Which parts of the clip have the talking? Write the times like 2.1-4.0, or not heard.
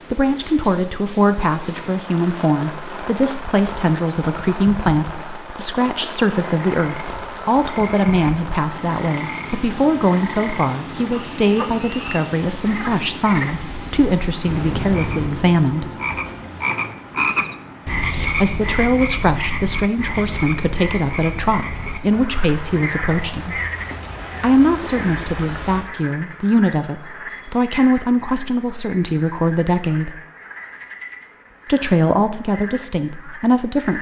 0.1-15.8, 18.3-23.6, 24.4-30.2, 31.6-33.9.